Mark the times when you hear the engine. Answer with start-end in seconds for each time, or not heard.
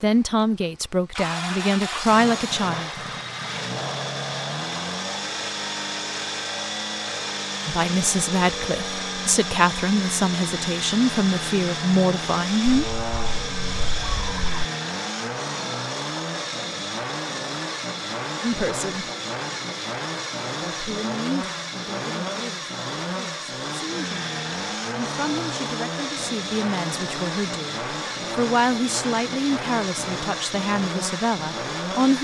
0.0-32.1.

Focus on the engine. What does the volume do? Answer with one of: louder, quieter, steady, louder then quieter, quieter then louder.
steady.